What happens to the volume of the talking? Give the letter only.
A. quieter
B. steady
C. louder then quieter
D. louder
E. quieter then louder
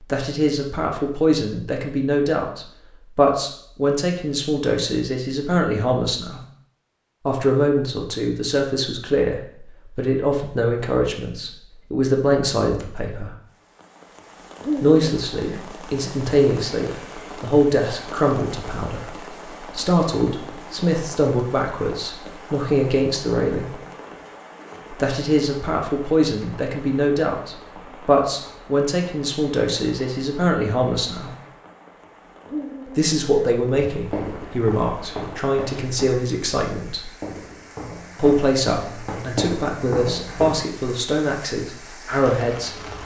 B.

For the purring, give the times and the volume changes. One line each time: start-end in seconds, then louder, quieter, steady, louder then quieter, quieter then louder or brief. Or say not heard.
not heard.